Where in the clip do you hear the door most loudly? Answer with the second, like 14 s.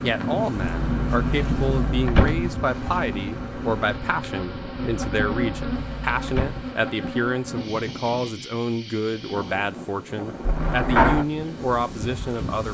11 s.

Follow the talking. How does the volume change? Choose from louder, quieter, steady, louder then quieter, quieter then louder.
steady.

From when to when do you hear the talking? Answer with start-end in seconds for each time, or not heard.
0.0-12.7.